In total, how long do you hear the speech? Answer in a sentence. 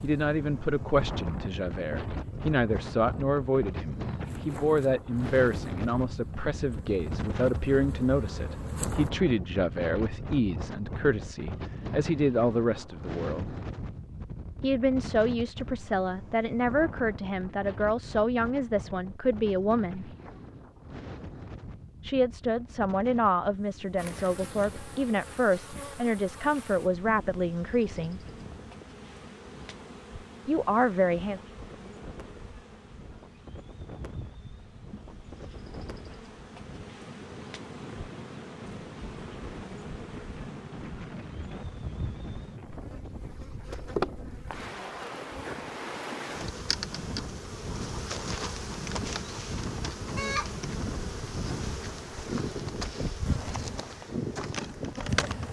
The speech can be heard for 26 seconds in total.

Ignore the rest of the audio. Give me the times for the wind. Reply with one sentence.
The wind can be heard from 0.0 to 55.4 s.